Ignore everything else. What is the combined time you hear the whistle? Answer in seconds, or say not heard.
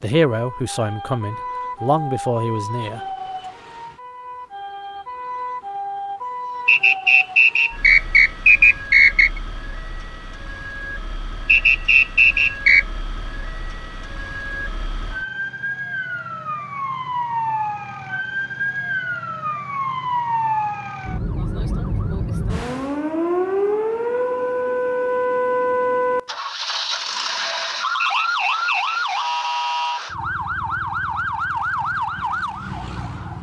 5 s.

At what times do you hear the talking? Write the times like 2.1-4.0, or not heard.
0.0-3.0.